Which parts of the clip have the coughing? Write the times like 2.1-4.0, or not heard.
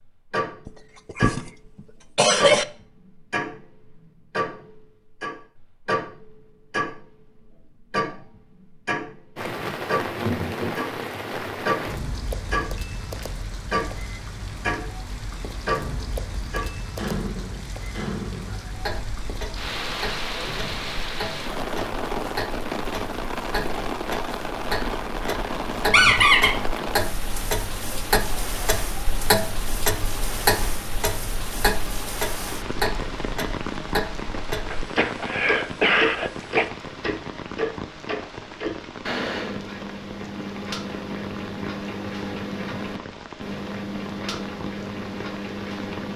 0.7-1.5, 2.1-2.6, 34.7-36.7.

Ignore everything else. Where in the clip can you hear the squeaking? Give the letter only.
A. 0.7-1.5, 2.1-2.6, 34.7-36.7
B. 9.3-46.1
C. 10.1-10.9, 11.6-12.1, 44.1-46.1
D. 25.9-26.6
D.